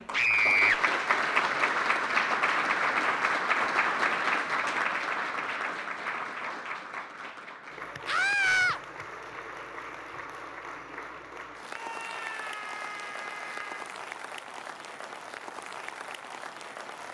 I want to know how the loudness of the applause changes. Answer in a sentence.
The loudness of the applause goes down.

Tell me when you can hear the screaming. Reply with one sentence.
The screaming can be heard from 0.1 to 0.8 s, from 8.1 to 8.8 s and from 11.7 to 13.9 s.